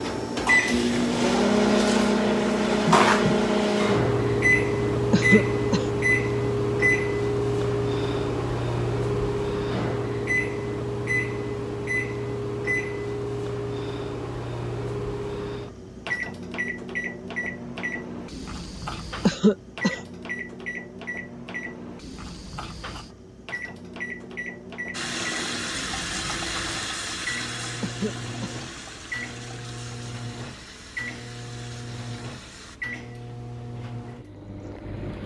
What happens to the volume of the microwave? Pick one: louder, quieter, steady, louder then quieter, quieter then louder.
quieter.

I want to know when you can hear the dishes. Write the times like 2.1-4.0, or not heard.
not heard.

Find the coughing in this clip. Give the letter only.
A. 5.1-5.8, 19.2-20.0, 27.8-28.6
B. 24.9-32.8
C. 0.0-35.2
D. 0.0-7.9
A.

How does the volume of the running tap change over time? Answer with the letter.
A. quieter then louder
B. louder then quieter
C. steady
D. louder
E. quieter
E.